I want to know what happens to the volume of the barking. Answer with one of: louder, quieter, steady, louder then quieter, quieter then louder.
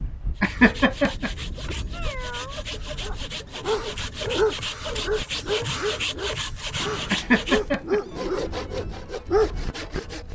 quieter then louder.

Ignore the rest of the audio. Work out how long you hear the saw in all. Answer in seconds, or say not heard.
10 s.